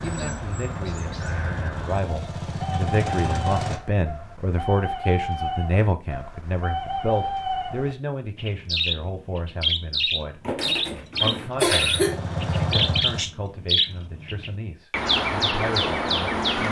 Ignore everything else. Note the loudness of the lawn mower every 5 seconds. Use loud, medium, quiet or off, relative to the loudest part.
loud, off, loud, off.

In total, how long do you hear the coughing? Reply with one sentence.
The coughing can be heard for 2 seconds in total.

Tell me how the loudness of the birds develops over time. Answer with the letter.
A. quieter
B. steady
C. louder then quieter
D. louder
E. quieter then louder
D.